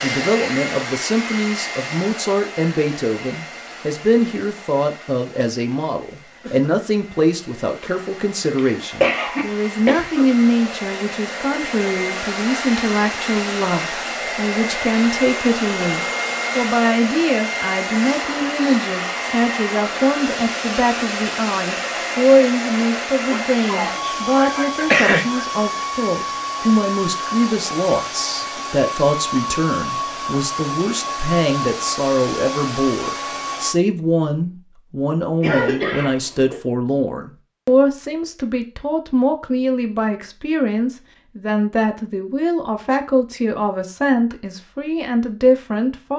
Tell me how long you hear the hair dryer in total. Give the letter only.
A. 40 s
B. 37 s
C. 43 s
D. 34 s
D.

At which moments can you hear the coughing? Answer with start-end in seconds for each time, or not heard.
8.6-10.2, 23.3-25.4, 35.4-36.6.